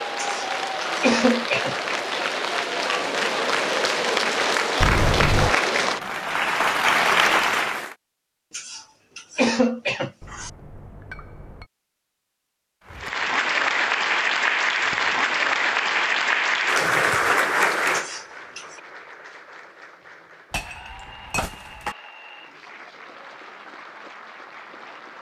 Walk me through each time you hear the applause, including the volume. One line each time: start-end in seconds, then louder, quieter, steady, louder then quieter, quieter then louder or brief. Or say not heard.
0.0-8.0 louder
12.9-25.1 quieter.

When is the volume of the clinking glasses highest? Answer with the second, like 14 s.
5 s.